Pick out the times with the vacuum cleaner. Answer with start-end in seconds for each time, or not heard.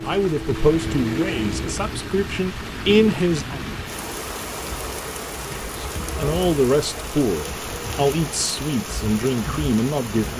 0.0-1.8.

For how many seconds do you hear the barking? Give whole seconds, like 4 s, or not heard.
not heard.